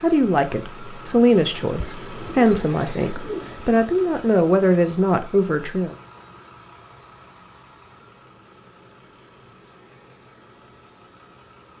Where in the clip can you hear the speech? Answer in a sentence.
The speech can be heard from 0.0 to 6.0 s.